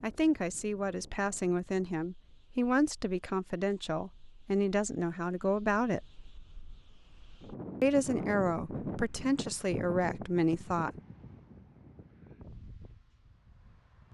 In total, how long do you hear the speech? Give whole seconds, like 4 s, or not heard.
9 s.